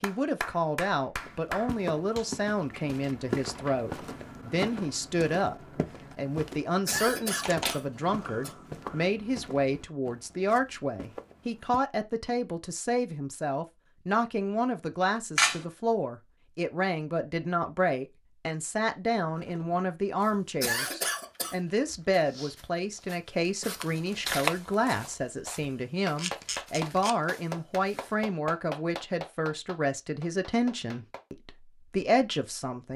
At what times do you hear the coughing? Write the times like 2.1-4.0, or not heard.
6.8-8.6, 20.6-21.6.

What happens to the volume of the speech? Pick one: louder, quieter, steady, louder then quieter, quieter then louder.
steady.